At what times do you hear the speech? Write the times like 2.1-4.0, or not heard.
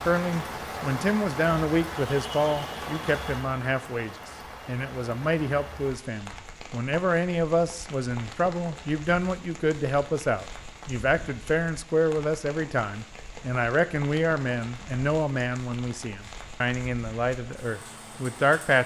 0.1-18.8.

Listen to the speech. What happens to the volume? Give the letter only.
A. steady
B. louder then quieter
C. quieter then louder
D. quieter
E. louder
A.